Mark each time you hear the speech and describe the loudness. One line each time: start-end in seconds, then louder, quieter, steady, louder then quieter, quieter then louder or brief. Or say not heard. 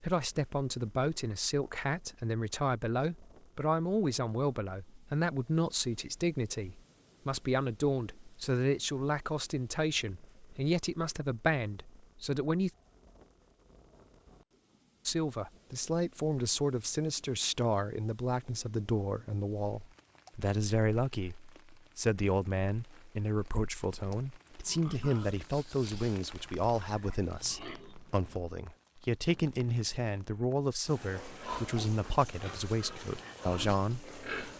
0.0-12.7 steady
15.1-34.5 steady.